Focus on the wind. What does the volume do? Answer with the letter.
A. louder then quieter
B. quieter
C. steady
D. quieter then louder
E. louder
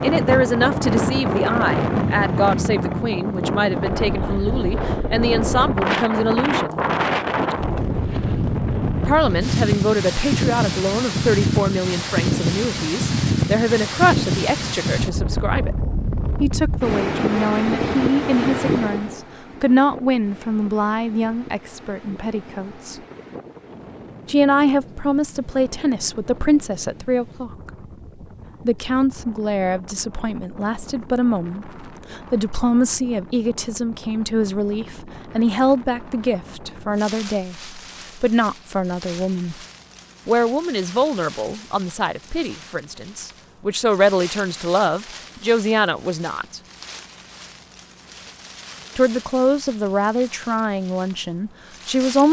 B.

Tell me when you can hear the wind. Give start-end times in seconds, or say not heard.
0.0-52.2.